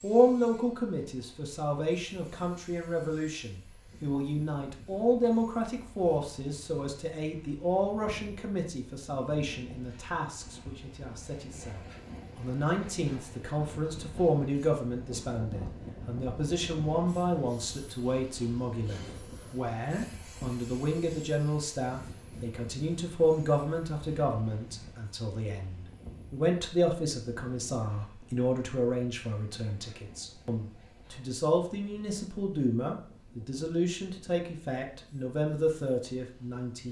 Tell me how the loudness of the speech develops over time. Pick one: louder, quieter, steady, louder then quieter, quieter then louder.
steady.